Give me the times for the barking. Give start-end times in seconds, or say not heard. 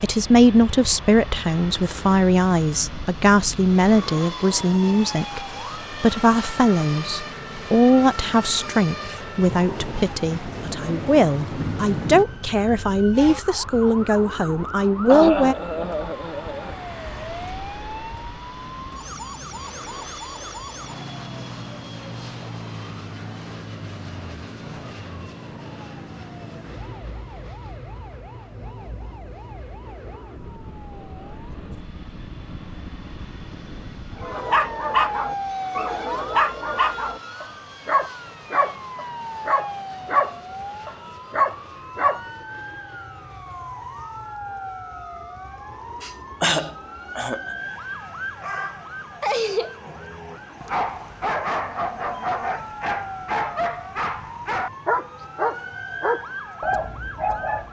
34.1-42.2, 48.4-57.6.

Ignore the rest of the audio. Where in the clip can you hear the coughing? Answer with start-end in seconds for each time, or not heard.
15.1-16.8, 46.0-47.4.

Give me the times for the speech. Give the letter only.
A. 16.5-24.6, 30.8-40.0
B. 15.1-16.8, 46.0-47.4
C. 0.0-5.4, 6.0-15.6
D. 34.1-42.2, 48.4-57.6
C.